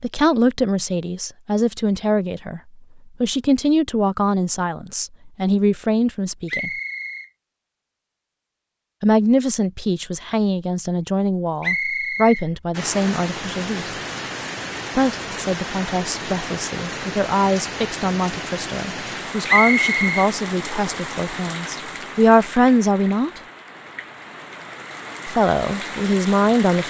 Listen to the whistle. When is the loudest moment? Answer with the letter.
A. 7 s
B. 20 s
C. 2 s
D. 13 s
B.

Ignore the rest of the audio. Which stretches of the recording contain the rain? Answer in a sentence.
The rain can be heard from 12.7 to 26.8 s.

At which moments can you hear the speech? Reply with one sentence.
You can hear the speech from 0.0 to 2.6 s, from 3.2 to 6.7 s, from 9.0 to 13.9 s, from 14.9 to 23.4 s and from 25.2 to 26.8 s.